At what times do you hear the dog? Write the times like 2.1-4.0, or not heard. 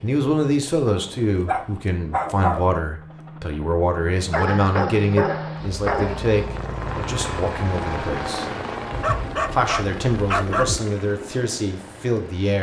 0.8-2.7, 4.3-6.4, 8.9-10.8.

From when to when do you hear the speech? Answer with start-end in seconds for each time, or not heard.
0.0-8.5, 9.5-12.5.